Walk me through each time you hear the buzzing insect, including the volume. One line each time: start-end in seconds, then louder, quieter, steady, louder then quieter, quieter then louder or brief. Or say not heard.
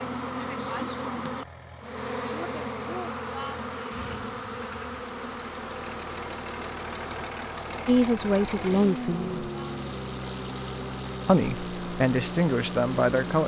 0.0-13.4 quieter.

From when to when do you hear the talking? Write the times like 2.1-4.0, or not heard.
7.8-9.3, 11.2-13.4.